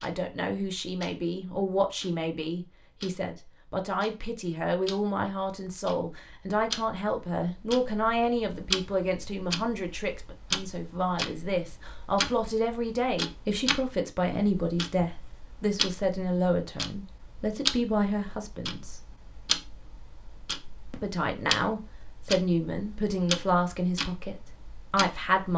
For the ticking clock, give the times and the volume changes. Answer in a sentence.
You can hear the ticking clock from 0.0 to 25.5 s, getting louder.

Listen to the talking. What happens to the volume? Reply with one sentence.
The loudness of the talking stays about the same.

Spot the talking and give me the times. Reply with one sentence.
You can hear the talking from 0.0 to 19.1 s and from 20.9 to 25.5 s.